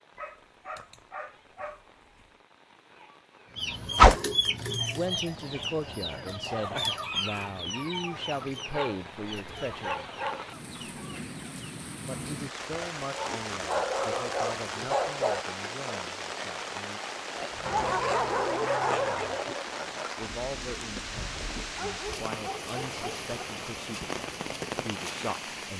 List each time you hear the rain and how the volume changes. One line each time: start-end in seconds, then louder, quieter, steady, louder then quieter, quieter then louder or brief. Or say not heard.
0.0-25.7 louder.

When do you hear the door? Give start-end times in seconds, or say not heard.
not heard.